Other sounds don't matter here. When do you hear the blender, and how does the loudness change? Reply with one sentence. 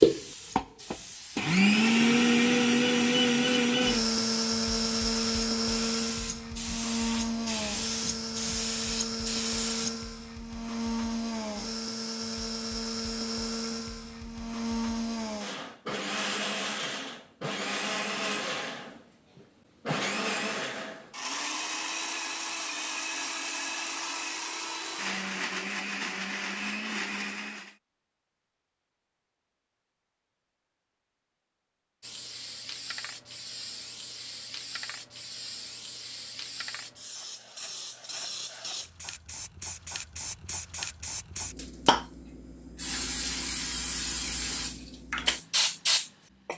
The blender can be heard from 0.0 to 27.8 s, getting quieter.